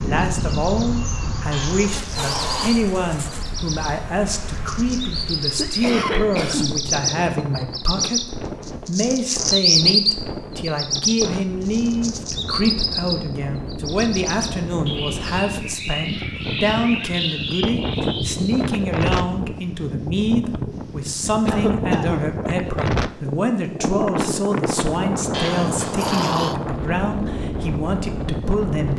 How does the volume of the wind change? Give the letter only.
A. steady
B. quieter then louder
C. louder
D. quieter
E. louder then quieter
C.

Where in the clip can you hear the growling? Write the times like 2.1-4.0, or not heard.
1.5-2.8, 25.3-26.6.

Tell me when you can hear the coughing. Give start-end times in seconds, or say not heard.
5.4-7.0, 21.4-22.4.